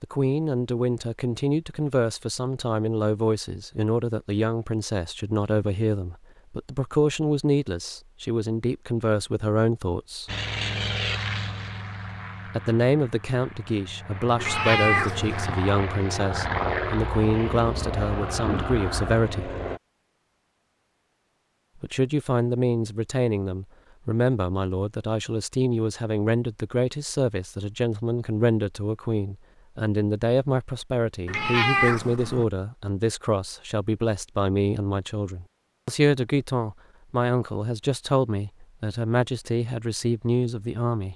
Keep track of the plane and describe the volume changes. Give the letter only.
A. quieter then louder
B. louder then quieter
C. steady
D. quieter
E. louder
A.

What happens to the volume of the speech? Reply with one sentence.
The loudness of the speech stays about the same.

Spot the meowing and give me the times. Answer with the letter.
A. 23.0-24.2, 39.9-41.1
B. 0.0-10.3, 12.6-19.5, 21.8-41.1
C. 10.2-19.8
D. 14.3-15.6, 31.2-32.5
D.